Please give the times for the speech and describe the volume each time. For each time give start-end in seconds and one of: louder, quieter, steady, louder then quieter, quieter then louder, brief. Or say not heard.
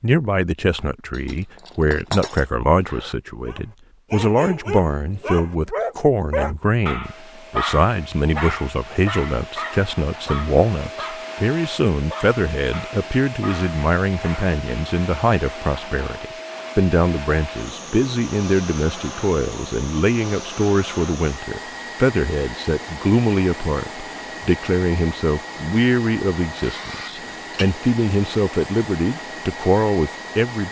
0.0-30.6 steady.